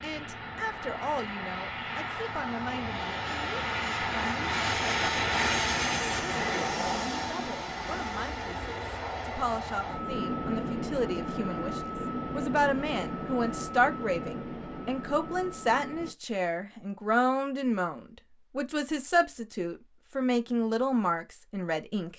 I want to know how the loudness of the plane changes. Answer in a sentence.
The volume of the plane goes up, then down.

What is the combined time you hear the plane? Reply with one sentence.
The plane can be heard for 16 seconds in total.